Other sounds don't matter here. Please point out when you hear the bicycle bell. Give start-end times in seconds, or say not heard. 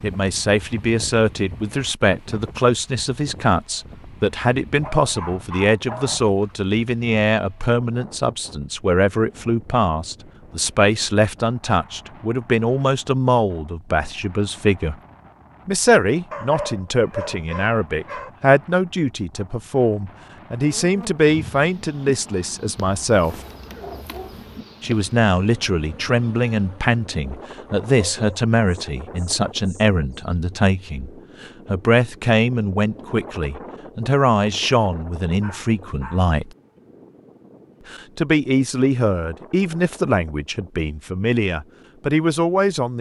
not heard.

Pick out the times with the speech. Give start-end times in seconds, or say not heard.
0.0-14.9, 15.7-23.4, 24.8-36.5, 37.9-42.9.